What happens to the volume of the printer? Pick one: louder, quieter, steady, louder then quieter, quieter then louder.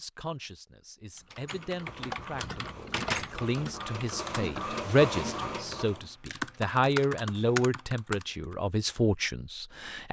louder.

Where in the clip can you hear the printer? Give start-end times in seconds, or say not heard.
1.4-6.2.